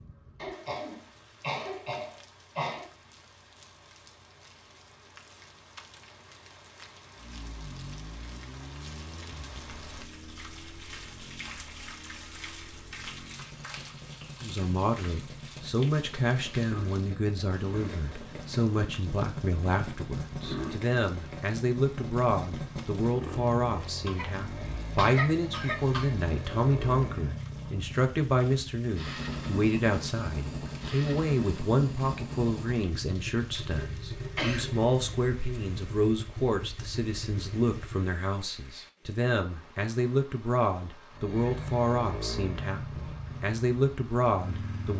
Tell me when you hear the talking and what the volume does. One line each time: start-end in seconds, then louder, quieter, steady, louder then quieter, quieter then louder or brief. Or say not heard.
14.4-44.9 steady.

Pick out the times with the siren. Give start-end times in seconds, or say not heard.
not heard.